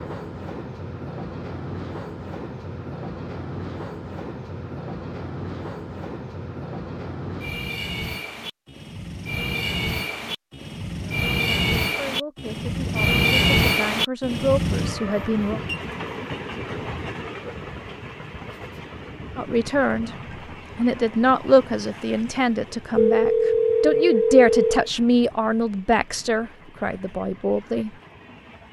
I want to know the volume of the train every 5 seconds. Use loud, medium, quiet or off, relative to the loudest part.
medium, medium, loud, medium, quiet, quiet.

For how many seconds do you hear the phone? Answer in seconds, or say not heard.
2 s.